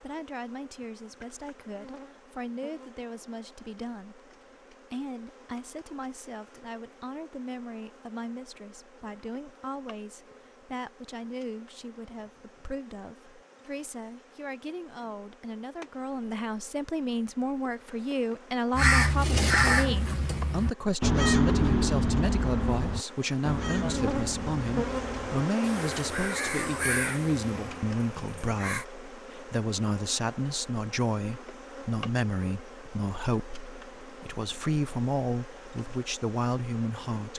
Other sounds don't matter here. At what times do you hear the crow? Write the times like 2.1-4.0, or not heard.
18.8-28.9.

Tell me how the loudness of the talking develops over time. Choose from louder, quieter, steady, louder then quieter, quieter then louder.
louder.